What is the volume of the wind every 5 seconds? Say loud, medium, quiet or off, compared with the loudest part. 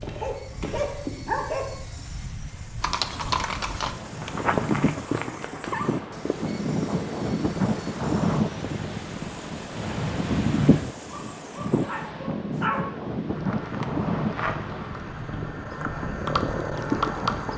medium, loud, loud, medium.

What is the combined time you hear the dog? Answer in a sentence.
The dog can be heard for 4 seconds in total.